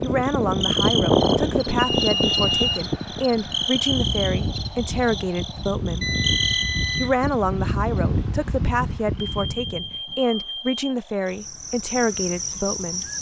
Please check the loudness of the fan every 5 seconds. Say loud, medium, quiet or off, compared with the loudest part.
loud, medium, off.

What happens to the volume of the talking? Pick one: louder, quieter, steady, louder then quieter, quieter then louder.
steady.